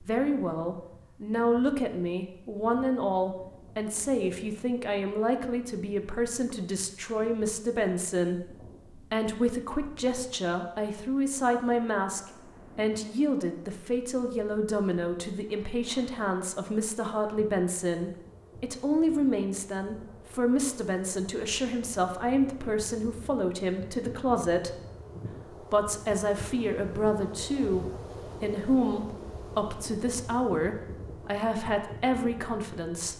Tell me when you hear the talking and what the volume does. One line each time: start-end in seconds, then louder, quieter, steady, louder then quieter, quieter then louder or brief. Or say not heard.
0.0-24.7 steady
25.6-33.1 steady.